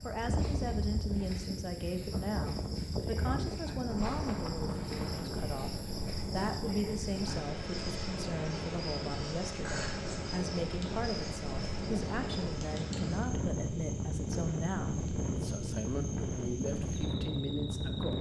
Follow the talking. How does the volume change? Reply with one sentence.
The volume of the talking stays about the same.